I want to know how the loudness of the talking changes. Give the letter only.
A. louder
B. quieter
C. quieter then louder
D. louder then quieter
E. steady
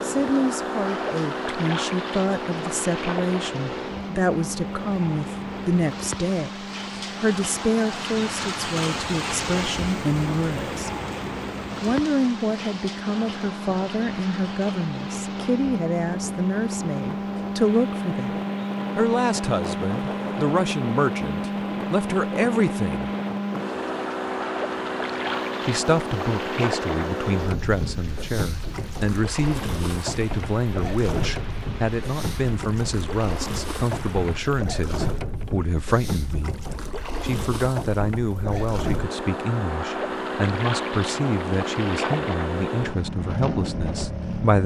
E.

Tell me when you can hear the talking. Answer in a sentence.
You can hear the talking from 0.0 to 10.9 s, from 11.8 to 23.1 s, from 25.6 to 36.5 s and from 37.2 to 44.6 s.